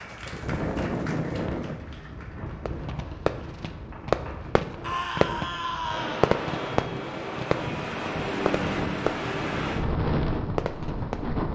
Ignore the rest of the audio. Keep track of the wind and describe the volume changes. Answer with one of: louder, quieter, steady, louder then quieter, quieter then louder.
quieter then louder.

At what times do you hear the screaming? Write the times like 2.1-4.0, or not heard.
4.8-6.3.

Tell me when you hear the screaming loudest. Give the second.
5 s.